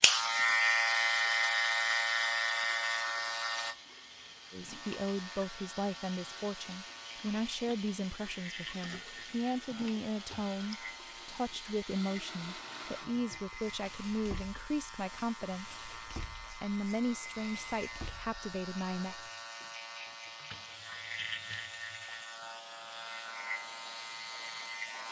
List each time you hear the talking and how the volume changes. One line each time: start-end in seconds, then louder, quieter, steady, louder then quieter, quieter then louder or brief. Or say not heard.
4.5-15.8 steady
16.6-19.1 brief.